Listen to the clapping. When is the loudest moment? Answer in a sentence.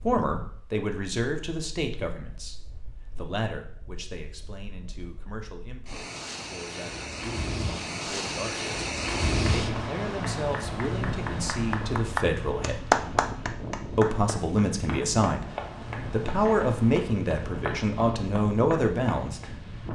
The loudest moment of the clapping is at 13 seconds.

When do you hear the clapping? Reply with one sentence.
You can hear the clapping from 9.4 to 19.5 s.